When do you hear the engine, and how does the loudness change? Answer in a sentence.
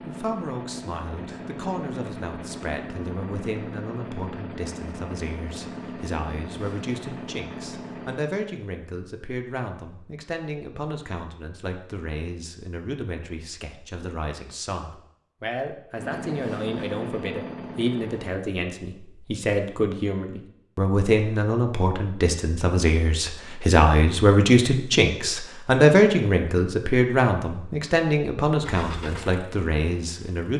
You can hear the engine from 0.0 to 8.2 s, at a steady volume; briefly from 15.9 to 18.4 s; and briefly from 28.6 to 30.5 s.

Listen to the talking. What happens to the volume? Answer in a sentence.
The volume of the talking goes up.